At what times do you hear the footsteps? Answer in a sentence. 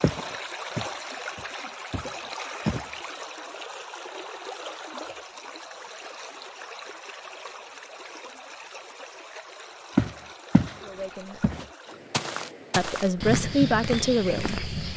The footsteps can be heard from 0.0 to 2.9 s and from 9.9 to 14.9 s.